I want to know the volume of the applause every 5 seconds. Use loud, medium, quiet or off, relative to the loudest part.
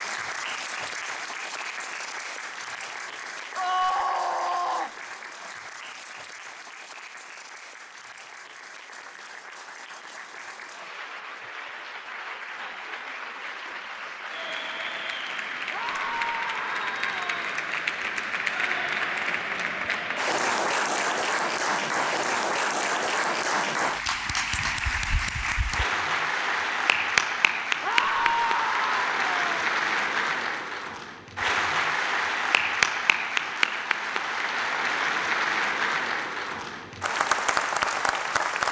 medium, quiet, medium, loud, loud, loud, loud, loud.